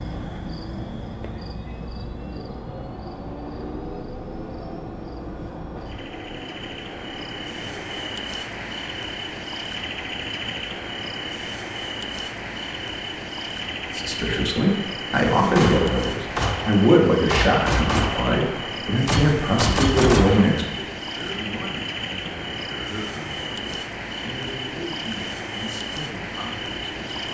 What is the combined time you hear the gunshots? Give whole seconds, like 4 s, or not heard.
5 s.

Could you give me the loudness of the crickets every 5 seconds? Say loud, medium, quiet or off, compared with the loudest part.
medium, loud, loud, loud, loud, loud.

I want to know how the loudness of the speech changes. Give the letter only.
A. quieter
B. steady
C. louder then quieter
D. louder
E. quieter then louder
A.